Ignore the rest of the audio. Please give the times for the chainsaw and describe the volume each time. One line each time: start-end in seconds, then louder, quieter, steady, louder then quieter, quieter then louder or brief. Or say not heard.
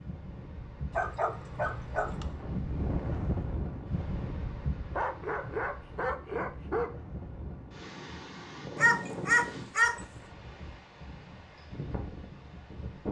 not heard.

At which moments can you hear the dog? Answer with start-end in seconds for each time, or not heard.
0.9-2.2, 5.0-6.9, 8.8-10.1.